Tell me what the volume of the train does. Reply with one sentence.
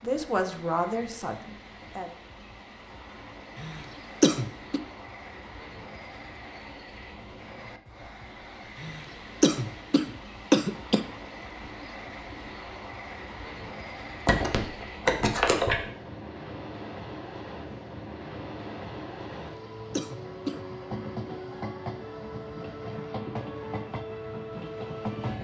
The volume of the train goes up.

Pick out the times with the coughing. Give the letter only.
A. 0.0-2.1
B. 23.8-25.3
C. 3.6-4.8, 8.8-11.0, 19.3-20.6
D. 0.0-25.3
C.